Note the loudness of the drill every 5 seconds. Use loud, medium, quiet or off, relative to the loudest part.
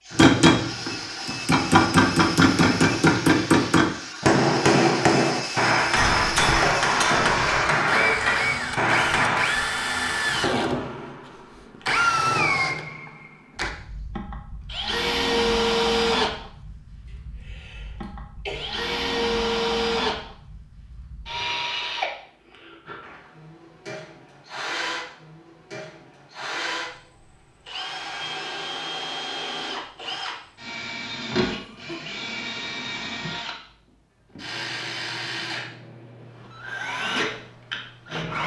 medium, loud, loud, loud, medium, medium, medium, medium.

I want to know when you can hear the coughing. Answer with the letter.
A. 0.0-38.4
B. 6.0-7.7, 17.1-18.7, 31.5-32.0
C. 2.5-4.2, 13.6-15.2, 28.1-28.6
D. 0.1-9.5
B.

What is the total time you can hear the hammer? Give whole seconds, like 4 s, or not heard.
9 s.